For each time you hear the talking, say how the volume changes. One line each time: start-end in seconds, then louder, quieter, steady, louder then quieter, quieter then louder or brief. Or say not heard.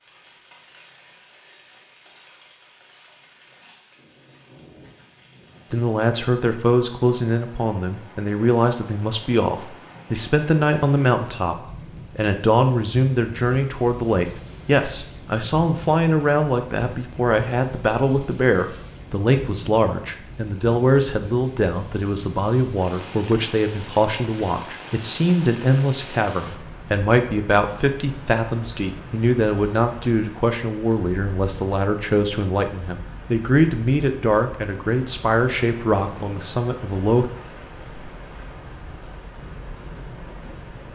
5.7-37.3 steady.